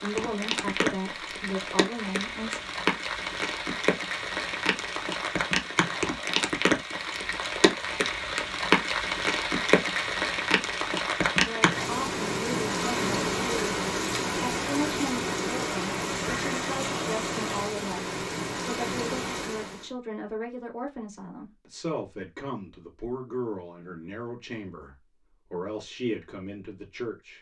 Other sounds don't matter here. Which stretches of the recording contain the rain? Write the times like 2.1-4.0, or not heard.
0.0-19.9.